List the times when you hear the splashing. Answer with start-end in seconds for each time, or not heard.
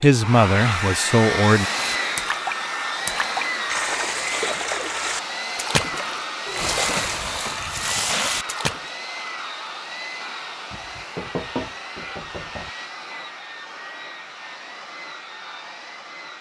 1.5-8.8.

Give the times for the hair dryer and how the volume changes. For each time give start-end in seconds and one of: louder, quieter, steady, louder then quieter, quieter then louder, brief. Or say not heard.
0.0-16.3 quieter.